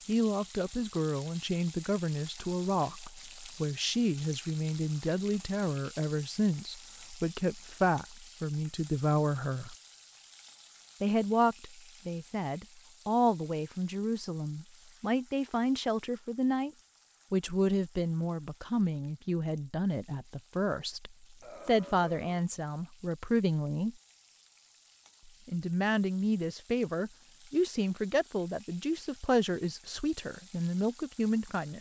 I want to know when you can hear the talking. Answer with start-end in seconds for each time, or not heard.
0.1-9.8, 11.0-16.7, 17.3-23.9, 25.4-31.7.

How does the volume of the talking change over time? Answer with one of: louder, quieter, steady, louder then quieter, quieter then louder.
steady.